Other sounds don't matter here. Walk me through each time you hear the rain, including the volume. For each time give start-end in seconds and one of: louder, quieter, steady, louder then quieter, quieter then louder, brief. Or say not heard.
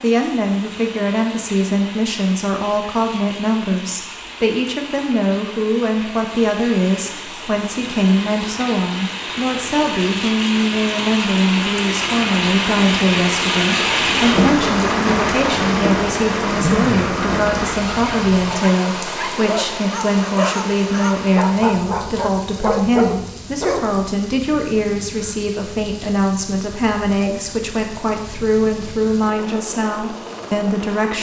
0.0-31.1 louder then quieter.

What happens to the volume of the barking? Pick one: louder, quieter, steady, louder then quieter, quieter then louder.
louder.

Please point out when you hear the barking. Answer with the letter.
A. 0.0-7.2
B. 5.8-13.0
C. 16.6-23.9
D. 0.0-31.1
C.